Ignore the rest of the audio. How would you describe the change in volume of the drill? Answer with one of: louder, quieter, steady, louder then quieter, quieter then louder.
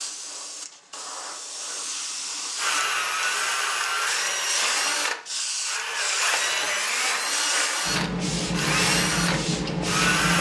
steady.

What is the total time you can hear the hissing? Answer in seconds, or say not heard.
10 s.